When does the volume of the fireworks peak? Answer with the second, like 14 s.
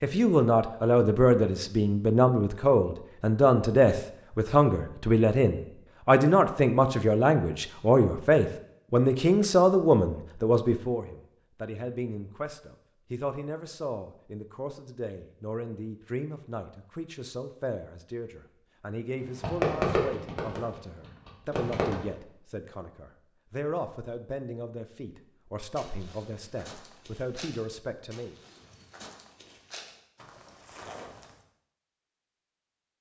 20 s.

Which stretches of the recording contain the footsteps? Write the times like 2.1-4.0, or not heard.
25.8-31.4.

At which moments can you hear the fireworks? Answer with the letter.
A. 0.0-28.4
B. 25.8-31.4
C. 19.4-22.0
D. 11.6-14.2
C.